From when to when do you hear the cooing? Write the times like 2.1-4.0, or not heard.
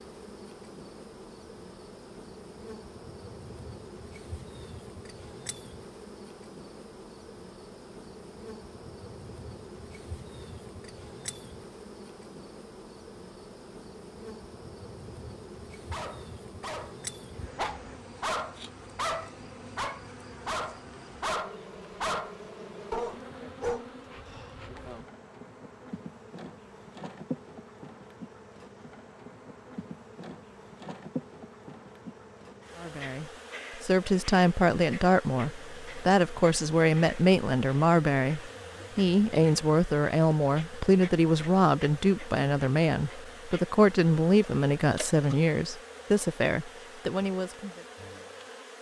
not heard.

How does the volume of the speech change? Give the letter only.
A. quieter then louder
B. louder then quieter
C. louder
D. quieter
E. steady
E.